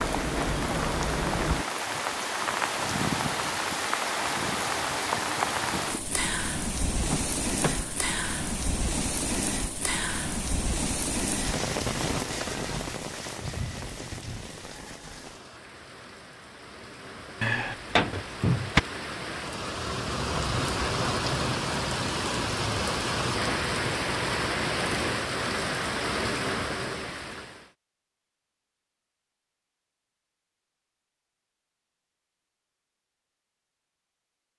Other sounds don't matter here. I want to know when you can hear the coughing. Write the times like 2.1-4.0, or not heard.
not heard.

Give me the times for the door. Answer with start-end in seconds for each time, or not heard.
7.0-8.1, 17.4-18.8.